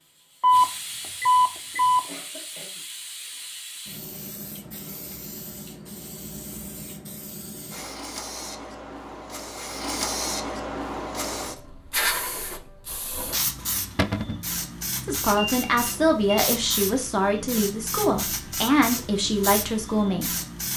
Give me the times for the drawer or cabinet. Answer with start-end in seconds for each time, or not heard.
13.9-14.4.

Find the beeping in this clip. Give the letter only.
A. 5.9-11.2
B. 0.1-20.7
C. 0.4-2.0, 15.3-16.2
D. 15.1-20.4
C.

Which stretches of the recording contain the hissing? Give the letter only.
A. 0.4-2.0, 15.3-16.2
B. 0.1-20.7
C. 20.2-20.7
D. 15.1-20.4
B.